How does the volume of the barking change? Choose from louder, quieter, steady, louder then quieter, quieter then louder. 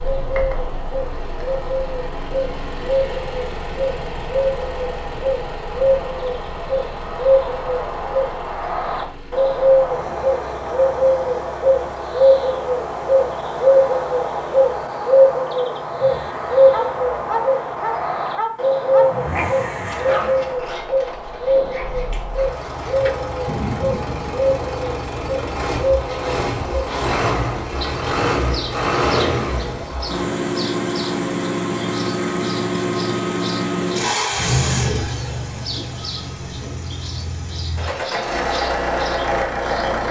quieter then louder.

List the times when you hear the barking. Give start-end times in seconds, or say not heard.
16.7-24.4.